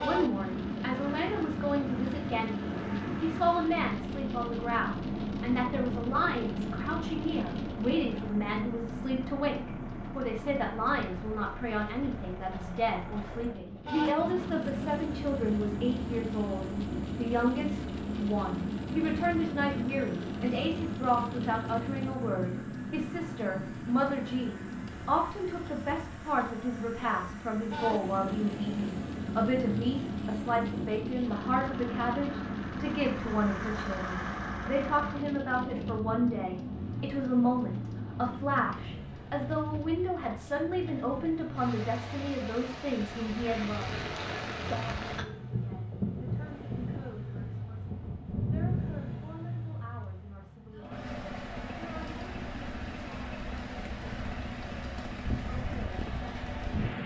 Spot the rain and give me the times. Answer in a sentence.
The rain can be heard from 0.0 to 57.0 s.